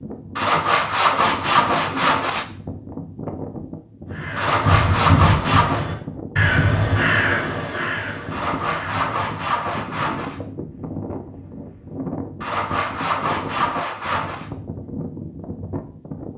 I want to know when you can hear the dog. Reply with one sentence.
You can't hear the dog here.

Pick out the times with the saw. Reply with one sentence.
You can hear the saw from 0.3 to 2.5 s, from 4.3 to 5.8 s, from 8.3 to 10.4 s and from 12.4 to 14.5 s.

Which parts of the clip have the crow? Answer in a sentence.
The crow can be heard from 4.2 to 9.8 s.